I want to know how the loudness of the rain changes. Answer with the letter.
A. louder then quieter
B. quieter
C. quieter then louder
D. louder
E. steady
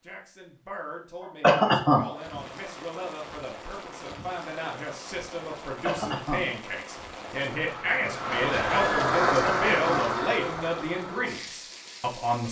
A.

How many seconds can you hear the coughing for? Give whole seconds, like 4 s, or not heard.
2 s.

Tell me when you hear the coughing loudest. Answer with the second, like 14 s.
2 s.